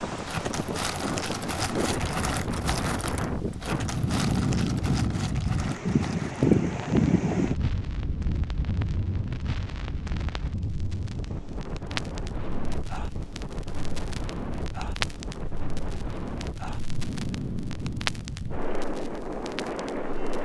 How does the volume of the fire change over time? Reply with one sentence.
The volume of the fire goes down.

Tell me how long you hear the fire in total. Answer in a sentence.
The fire can be heard for 20 seconds in total.